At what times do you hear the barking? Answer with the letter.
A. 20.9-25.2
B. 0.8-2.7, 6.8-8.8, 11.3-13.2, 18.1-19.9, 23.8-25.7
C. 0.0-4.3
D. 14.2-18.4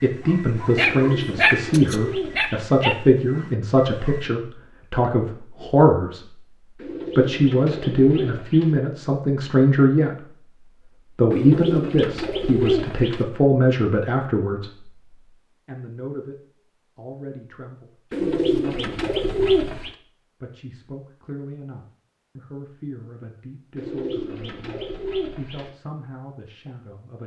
C.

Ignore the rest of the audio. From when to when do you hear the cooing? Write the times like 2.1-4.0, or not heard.
0.8-2.7, 6.8-8.8, 11.3-13.2, 18.1-19.9, 23.8-25.7.